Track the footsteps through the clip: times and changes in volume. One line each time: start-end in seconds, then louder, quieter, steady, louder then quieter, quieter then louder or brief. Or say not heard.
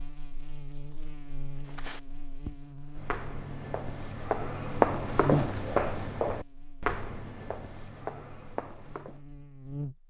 1.6-9.2 louder then quieter.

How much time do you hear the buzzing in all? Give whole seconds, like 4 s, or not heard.
10 s.